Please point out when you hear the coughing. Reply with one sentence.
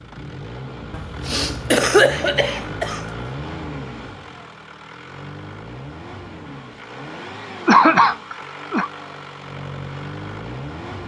You can hear the coughing from 0.9 to 3.0 s and from 7.7 to 8.9 s.